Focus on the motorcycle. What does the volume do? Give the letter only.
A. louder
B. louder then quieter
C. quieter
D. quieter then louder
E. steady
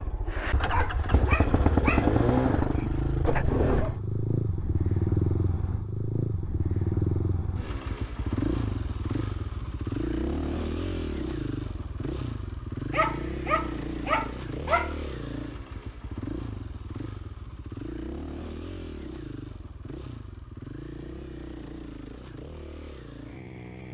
C.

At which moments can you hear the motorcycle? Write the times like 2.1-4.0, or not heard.
0.0-23.8.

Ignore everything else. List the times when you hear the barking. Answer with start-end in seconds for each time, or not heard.
0.7-2.1, 12.9-15.0.